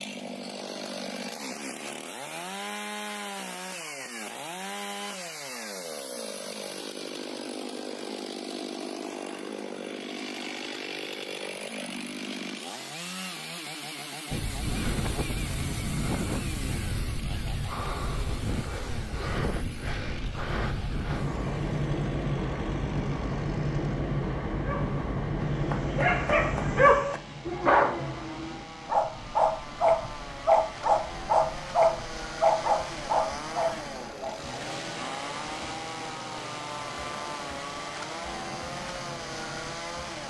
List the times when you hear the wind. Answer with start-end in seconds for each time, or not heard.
14.3-40.2.